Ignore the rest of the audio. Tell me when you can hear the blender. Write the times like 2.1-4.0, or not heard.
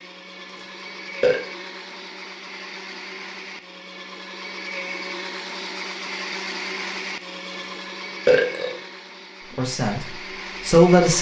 0.0-11.1.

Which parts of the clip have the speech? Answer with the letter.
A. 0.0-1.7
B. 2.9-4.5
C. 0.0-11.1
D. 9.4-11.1
D.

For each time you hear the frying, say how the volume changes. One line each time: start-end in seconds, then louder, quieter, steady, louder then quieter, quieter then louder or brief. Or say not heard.
not heard.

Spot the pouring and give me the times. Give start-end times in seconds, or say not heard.
not heard.